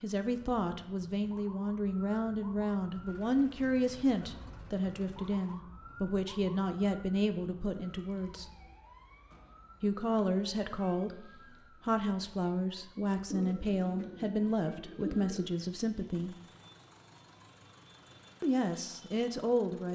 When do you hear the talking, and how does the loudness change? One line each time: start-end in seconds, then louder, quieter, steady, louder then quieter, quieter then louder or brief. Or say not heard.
0.0-8.5 steady
9.8-16.4 steady
18.4-19.8 brief.